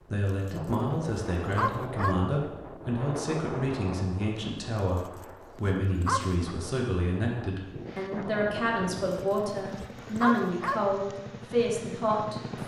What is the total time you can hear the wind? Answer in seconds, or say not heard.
9 s.